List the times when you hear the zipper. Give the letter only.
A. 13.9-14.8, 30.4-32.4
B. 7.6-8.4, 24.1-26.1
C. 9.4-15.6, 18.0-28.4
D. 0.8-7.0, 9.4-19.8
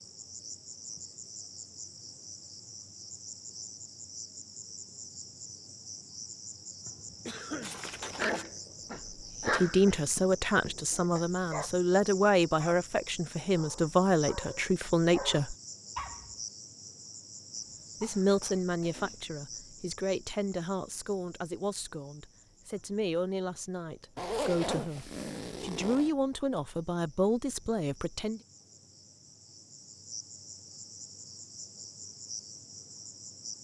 B.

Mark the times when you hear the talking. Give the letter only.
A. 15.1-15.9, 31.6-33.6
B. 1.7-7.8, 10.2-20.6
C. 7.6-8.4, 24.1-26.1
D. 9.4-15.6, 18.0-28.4
D.